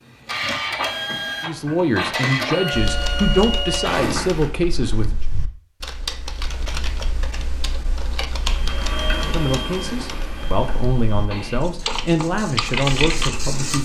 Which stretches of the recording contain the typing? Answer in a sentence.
You can hear the typing from 2.7 to 13.8 s.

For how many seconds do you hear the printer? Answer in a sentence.
You can hear the printer for 10 seconds altogether.